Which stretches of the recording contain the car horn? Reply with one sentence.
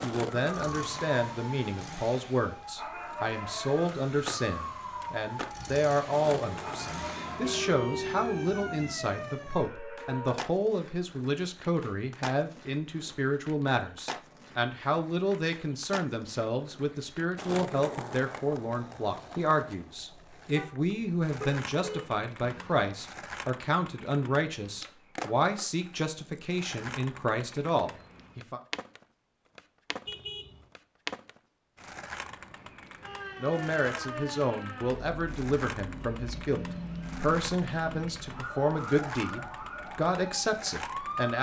You can hear the car horn from 6.9 to 8.9 s, from 20.6 to 22.9 s and from 30.1 to 30.7 s.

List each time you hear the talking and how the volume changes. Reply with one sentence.
You can hear the talking from 0.0 to 28.6 s, at a steady volume; and from 33.4 to 41.3 s, at a steady volume.